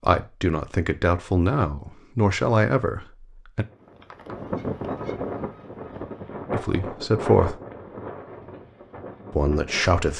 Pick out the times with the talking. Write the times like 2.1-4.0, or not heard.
0.0-3.6, 6.5-7.5, 9.3-10.1.